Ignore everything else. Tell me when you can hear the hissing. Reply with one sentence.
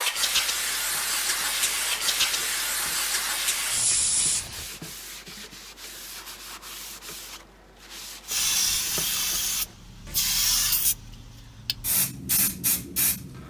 You can hear the hissing from 0.0 to 4.7 s and from 8.2 to 13.4 s.